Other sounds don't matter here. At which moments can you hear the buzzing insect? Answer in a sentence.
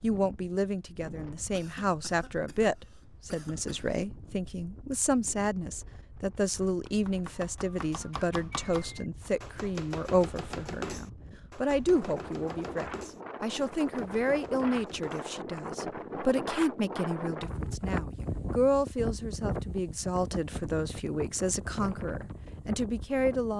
You can't hear the buzzing insect here.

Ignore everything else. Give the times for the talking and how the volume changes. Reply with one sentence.
You can hear the talking from 0.0 to 23.5 s, at a steady volume.